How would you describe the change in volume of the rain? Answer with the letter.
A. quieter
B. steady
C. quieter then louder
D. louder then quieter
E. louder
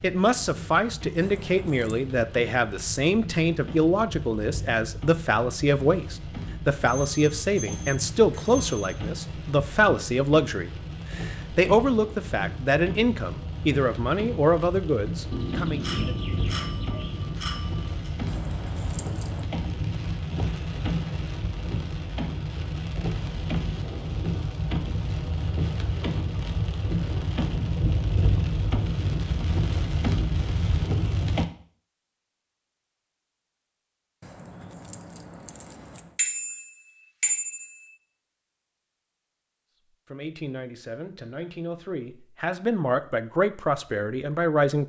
E.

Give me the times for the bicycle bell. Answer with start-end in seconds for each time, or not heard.
6.8-8.9, 15.3-18.1, 36.1-37.9.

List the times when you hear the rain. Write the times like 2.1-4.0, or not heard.
0.0-31.4.